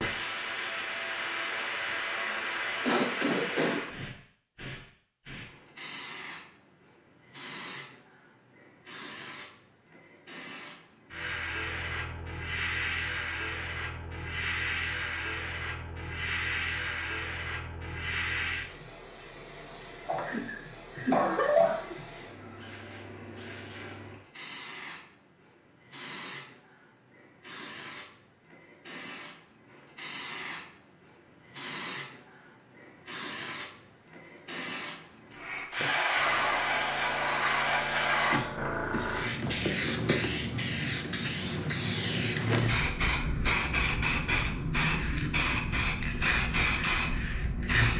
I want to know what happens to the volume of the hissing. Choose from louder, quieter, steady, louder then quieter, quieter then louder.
quieter then louder.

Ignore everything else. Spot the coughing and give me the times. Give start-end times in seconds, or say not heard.
2.4-3.8, 20.1-21.9, 38.3-39.8.